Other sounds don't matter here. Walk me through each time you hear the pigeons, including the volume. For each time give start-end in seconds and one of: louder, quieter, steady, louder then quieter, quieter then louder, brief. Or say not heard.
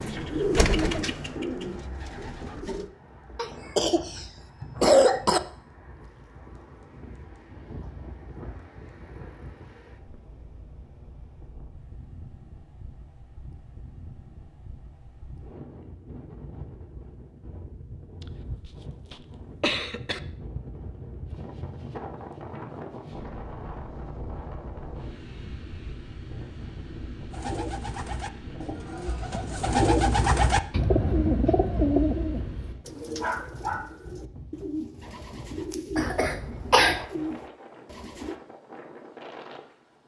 0.0-2.9 brief
27.3-38.4 louder then quieter.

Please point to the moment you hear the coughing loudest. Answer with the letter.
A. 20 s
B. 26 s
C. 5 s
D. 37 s
C.